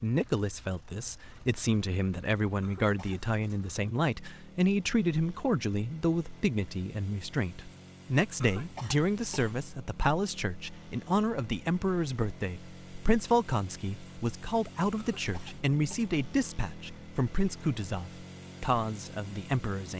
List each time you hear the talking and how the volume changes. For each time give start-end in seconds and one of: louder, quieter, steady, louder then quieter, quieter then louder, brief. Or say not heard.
0.0-19.9 steady.